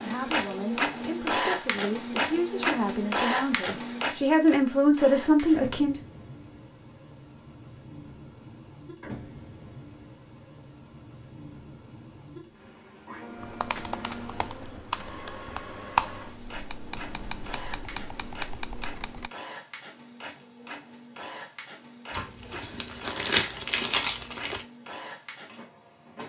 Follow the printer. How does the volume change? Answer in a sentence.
The loudness of the printer goes down.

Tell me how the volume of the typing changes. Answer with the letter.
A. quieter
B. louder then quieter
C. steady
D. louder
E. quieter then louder
B.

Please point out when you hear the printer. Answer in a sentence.
The printer can be heard from 0.0 to 26.2 s.